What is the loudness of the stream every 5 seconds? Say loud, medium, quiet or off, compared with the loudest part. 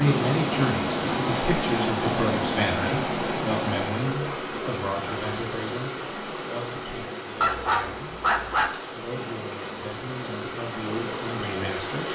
loud, medium, medium.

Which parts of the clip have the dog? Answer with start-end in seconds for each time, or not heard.
7.4-8.7.